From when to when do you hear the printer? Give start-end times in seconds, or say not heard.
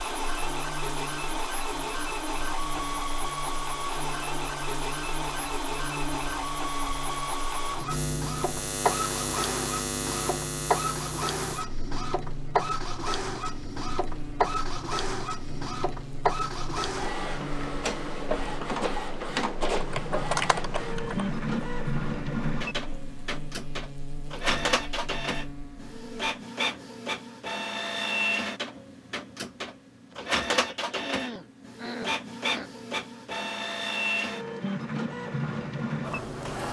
0.0-36.6.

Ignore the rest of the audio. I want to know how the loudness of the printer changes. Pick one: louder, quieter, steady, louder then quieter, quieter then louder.
steady.